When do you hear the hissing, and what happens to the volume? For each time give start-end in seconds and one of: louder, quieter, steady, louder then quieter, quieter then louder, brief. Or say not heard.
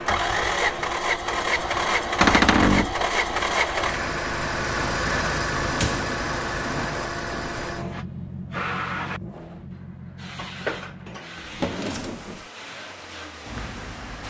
0.0-14.2 quieter.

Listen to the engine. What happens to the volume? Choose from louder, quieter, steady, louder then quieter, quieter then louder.
quieter.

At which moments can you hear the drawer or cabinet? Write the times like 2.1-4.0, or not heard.
2.2-3.0, 5.6-6.9, 11.3-12.4.